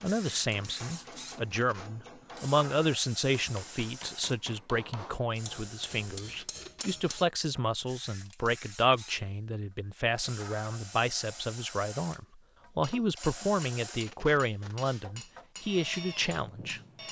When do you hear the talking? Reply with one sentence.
The talking can be heard from 0.0 to 16.8 s.